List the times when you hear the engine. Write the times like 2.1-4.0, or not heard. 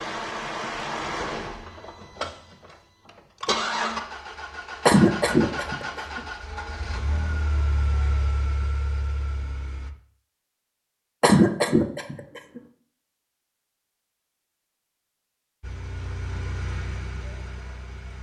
0.0-9.9, 15.6-18.1.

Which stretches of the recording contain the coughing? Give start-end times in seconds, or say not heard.
4.8-6.2, 11.2-12.6.